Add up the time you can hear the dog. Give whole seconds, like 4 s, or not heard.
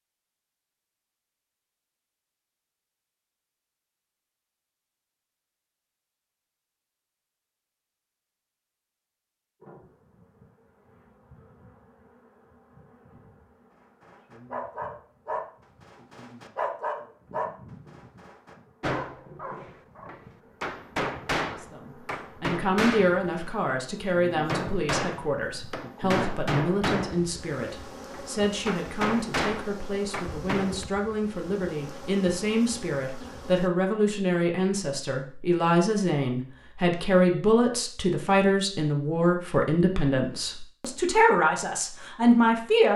6 s.